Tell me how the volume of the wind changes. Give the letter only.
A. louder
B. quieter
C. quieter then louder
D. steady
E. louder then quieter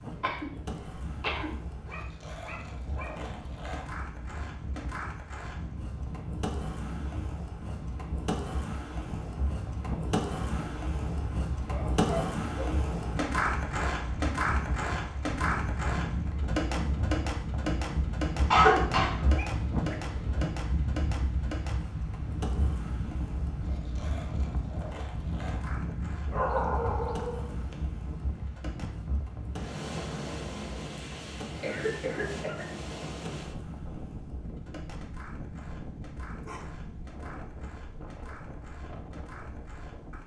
E.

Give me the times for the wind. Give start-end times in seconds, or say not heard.
0.0-40.2.